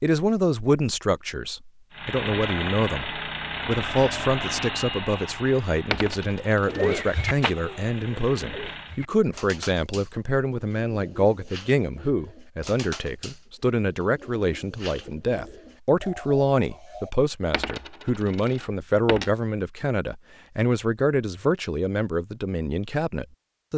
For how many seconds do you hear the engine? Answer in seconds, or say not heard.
7 s.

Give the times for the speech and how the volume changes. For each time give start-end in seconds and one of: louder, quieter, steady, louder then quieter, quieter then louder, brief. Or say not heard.
0.0-23.7 steady.